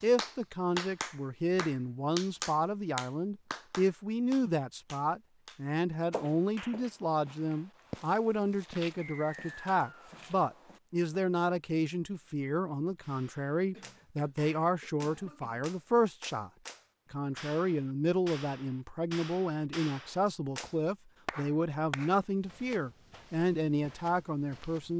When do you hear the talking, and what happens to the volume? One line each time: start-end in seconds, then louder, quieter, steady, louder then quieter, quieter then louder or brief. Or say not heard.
0.0-16.5 steady
17.1-24.9 steady.